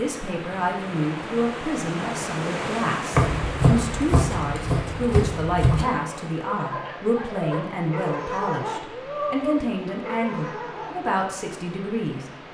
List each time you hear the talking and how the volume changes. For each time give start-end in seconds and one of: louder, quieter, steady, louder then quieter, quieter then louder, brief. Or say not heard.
0.0-12.4 steady.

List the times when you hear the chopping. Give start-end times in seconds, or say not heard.
3.1-5.8.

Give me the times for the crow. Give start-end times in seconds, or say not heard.
not heard.